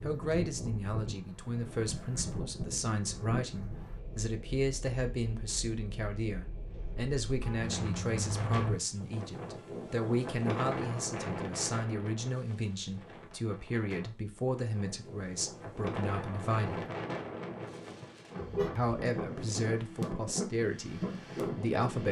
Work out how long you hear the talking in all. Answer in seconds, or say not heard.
20 s.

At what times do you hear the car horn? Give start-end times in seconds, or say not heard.
6.8-8.8, 18.4-18.9.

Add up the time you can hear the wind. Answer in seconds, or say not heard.
22 s.